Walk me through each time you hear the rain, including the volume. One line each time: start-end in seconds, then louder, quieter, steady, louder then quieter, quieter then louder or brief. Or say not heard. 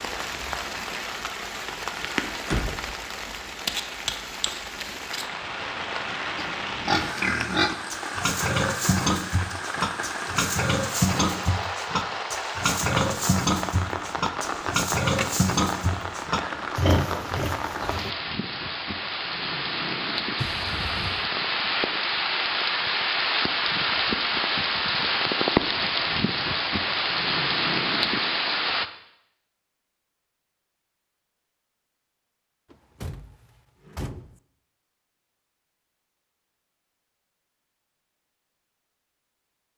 0.0-28.9 louder.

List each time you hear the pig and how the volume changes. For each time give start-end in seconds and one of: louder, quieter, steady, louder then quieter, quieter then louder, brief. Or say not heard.
6.3-18.1 steady.